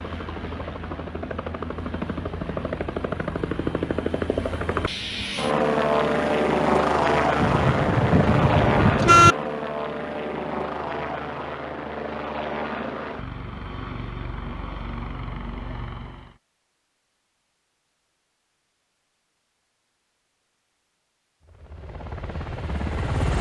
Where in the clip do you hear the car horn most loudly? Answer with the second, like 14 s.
9 s.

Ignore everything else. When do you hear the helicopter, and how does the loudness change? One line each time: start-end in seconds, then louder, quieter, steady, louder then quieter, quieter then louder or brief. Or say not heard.
0.0-16.4 louder then quieter
21.4-23.3 brief.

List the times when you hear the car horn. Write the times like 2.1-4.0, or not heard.
7.4-9.3.